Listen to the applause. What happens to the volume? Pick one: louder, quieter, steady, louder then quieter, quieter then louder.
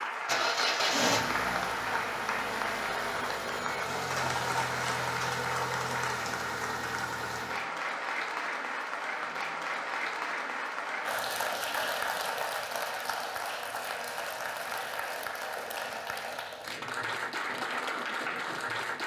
steady.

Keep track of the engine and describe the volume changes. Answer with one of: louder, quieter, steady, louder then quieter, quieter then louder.
quieter.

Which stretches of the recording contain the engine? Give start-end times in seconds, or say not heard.
0.1-7.7.